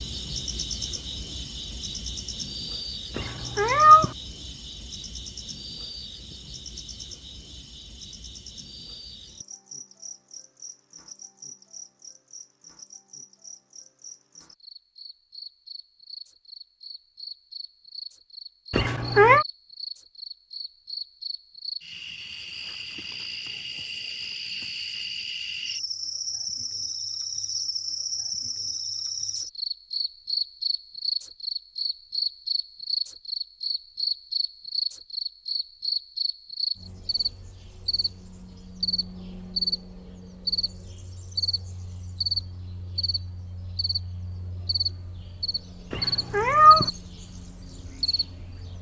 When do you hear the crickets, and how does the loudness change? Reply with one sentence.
You can hear the crickets from 0.0 to 48.7 s, getting quieter then louder.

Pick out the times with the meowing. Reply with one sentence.
You can hear the meowing from 3.1 to 4.1 s, from 18.7 to 19.4 s and from 45.9 to 46.9 s.